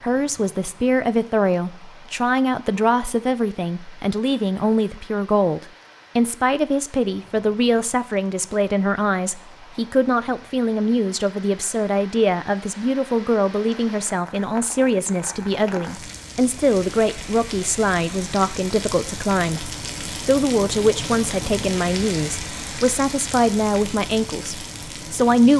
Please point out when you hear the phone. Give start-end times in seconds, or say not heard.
not heard.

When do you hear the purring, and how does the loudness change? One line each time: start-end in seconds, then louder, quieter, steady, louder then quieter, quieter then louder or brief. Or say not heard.
not heard.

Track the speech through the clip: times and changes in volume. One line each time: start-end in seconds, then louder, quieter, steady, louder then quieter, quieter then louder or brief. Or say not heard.
0.0-25.5 steady.